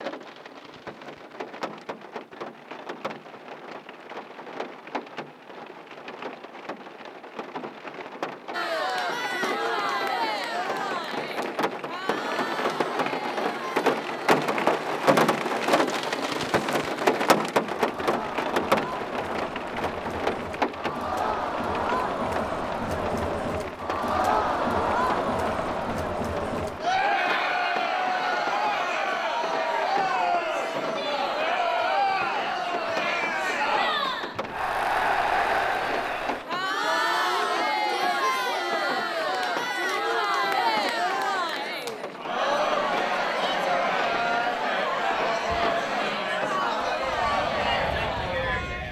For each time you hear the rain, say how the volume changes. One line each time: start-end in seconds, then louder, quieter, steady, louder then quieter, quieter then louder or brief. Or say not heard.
0.0-48.8 louder then quieter.